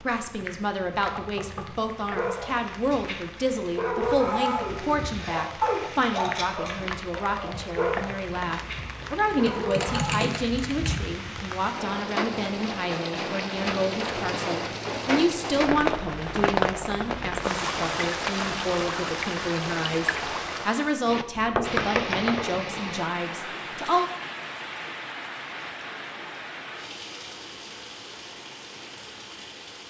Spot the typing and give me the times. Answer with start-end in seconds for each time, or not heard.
9.3-10.9.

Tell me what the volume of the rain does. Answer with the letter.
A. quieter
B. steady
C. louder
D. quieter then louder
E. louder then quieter
E.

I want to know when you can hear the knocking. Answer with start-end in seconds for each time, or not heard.
1.1-1.9, 21.4-22.5.